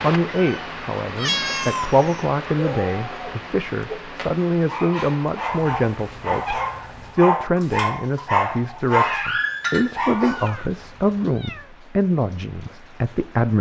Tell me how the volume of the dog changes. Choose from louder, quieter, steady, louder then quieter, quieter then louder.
louder.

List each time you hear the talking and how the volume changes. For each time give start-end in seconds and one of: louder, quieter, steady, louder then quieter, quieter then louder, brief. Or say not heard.
0.0-13.5 steady.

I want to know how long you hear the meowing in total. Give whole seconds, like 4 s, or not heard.
5 s.